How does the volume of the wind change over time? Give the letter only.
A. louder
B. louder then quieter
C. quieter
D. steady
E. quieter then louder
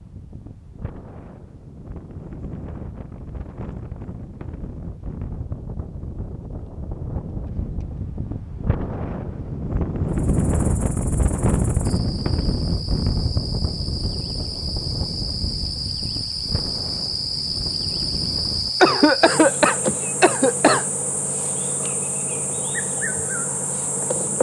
B.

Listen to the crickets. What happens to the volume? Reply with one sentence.
The loudness of the crickets goes up.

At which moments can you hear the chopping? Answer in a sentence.
The chopping can't be heard in this clip.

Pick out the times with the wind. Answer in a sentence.
You can hear the wind from 0.0 to 18.7 s.